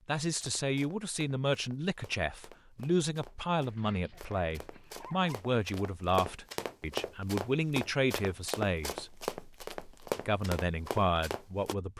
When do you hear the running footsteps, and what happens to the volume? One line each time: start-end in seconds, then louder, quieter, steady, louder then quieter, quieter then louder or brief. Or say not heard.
0.3-11.8 louder.